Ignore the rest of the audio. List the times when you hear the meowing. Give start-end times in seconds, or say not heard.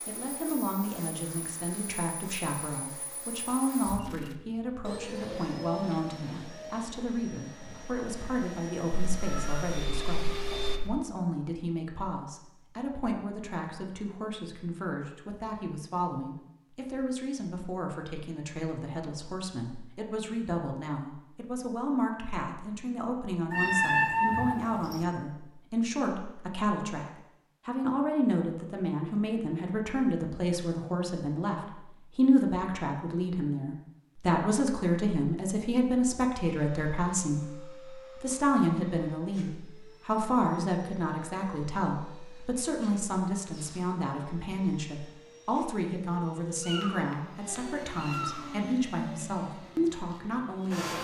9.1-10.9, 23.5-25.1, 46.6-48.5.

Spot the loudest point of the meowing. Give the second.
24 s.